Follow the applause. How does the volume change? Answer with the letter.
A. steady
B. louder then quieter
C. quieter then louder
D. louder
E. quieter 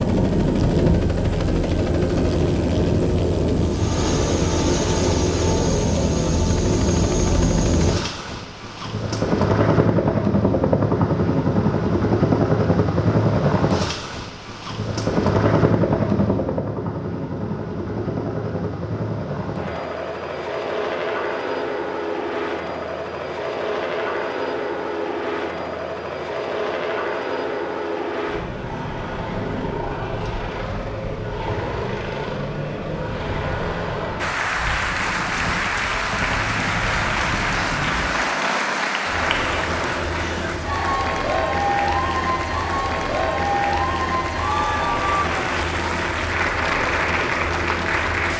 A.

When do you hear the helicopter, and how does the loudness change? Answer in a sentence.
The helicopter can be heard from 0.0 to 48.3 s, getting quieter.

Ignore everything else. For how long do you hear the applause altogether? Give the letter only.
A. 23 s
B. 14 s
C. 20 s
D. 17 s
B.